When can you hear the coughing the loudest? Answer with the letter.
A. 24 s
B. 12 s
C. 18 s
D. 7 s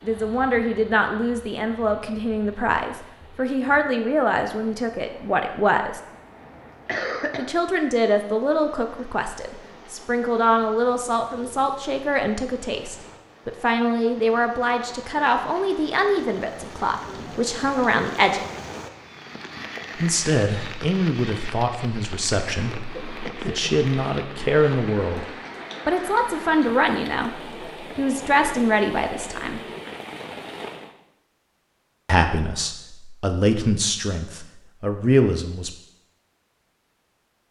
D.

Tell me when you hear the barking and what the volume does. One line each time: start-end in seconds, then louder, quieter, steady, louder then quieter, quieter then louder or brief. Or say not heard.
not heard.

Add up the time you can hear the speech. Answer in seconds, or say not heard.
29 s.